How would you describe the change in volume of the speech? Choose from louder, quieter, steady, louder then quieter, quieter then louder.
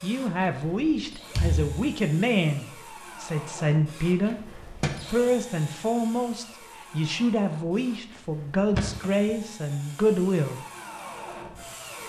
steady.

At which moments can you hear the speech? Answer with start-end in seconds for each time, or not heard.
0.0-4.4, 5.0-10.6.